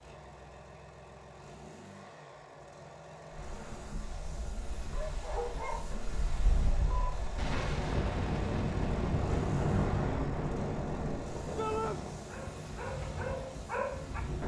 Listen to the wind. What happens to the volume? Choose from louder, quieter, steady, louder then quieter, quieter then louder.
louder then quieter.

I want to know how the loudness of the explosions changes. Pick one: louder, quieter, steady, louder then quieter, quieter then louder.
steady.